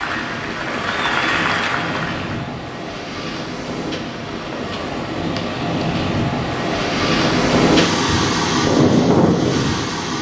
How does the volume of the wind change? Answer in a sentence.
The loudness of the wind goes up.